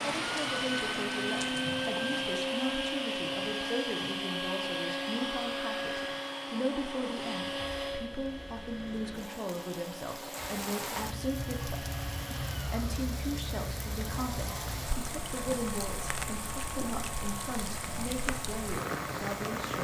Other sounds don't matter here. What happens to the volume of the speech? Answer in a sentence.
The volume of the speech stays about the same.